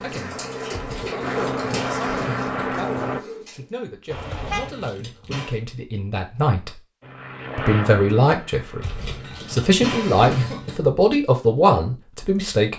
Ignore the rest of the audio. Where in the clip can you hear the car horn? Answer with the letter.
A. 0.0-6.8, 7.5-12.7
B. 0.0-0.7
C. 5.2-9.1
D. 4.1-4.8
D.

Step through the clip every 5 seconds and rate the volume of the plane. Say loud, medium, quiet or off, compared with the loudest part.
loud, medium, off.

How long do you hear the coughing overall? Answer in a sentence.
You can hear the coughing for 5 seconds altogether.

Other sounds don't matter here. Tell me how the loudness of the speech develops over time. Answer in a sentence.
The loudness of the speech goes up.